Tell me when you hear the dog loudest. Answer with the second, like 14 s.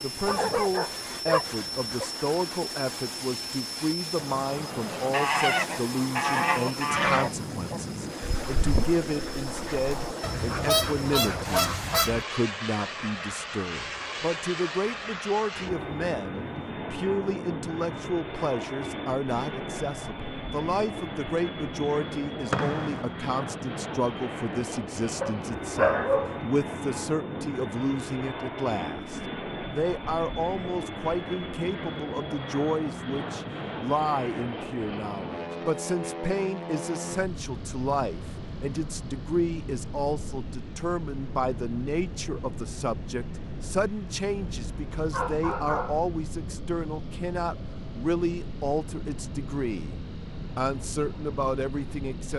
26 s.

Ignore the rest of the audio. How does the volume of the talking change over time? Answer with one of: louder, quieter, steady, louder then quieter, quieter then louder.
steady.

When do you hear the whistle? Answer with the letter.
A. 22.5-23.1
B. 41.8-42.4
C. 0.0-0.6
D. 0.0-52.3
A.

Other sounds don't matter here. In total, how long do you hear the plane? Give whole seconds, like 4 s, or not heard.
52 s.